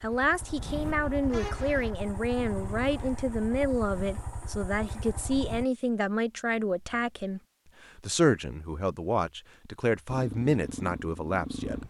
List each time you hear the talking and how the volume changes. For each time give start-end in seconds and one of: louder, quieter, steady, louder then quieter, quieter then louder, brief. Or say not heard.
0.0-11.8 steady.